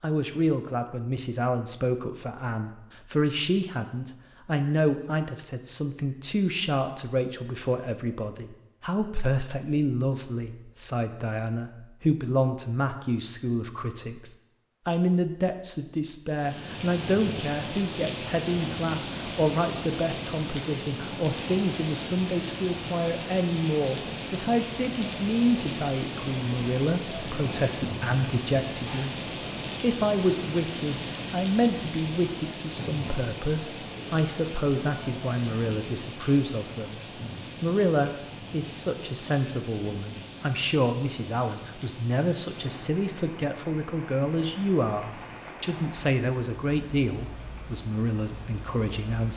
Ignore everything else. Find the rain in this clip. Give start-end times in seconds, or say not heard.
16.4-49.3.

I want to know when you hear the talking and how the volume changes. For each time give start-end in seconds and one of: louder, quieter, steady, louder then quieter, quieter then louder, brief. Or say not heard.
0.0-37.0 steady
37.6-49.3 steady.